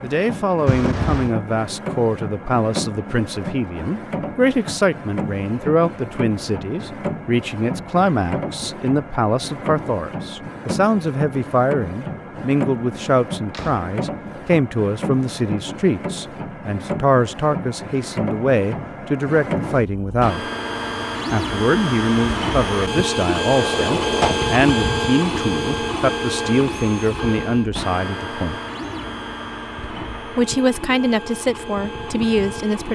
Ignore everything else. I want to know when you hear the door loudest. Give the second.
24 s.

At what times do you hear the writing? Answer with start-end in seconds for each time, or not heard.
not heard.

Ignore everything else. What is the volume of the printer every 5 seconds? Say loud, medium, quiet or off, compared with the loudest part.
medium, medium, medium, medium, loud, loud, medium.